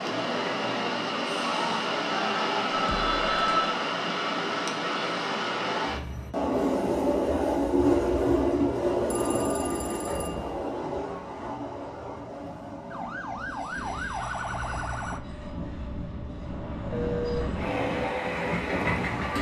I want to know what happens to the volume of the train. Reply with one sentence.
The volume of the train goes down, then up.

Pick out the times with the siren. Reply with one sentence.
You can hear the siren from 12.9 to 15.2 s.